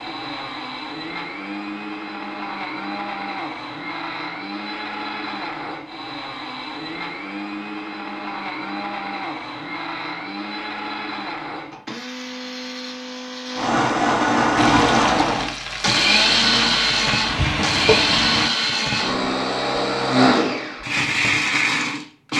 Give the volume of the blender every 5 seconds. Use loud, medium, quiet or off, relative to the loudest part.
medium, medium, loud, loud, loud.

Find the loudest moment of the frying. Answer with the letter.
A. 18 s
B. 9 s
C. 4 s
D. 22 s
A.